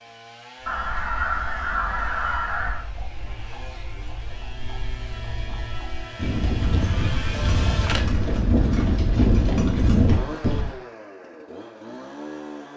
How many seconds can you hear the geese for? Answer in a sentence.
The geese can be heard for 4 seconds in total.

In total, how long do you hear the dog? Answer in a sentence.
The dog can't be heard in this clip.